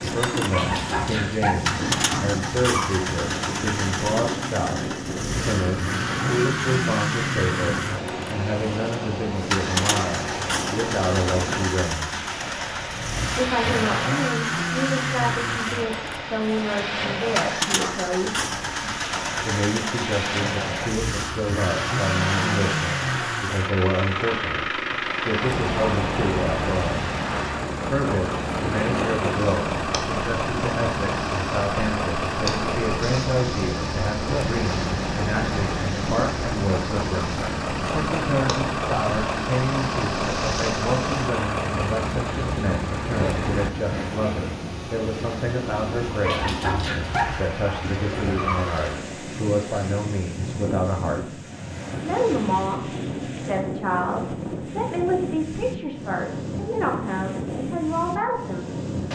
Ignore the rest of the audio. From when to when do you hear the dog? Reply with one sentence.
The dog can be heard from 0.5 to 3.0 s and from 46.2 to 48.6 s.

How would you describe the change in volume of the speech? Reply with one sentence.
The volume of the speech stays about the same.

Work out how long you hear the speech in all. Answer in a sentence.
The speech can be heard for 55 seconds in total.